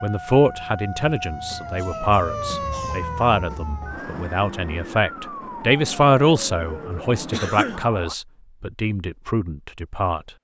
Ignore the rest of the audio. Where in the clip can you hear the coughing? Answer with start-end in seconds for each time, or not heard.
1.8-3.1, 7.3-7.8.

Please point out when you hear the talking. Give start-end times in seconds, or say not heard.
0.0-10.3.